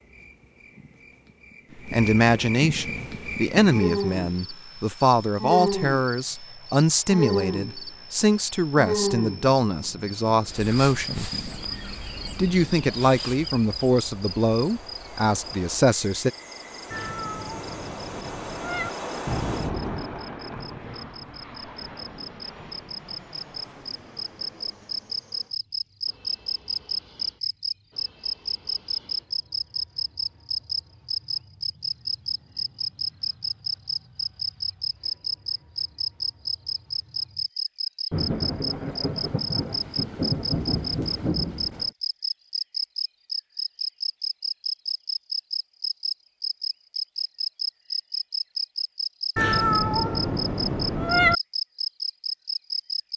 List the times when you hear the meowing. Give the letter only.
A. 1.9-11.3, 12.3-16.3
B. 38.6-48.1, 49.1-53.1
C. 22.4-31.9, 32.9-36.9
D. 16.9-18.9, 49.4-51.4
D.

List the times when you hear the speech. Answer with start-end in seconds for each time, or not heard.
1.9-11.3, 12.3-16.3.